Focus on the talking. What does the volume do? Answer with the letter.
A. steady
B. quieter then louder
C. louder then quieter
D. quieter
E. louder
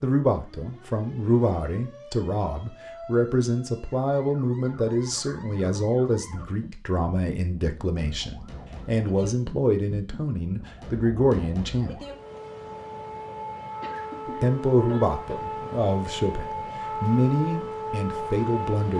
A.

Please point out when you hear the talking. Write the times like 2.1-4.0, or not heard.
0.0-12.0, 14.2-18.9.